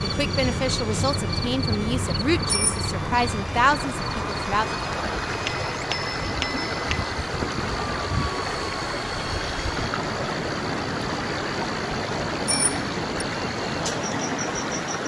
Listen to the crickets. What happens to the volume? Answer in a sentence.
The volume of the crickets goes down.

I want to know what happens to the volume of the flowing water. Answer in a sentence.
The volume of the flowing water goes up.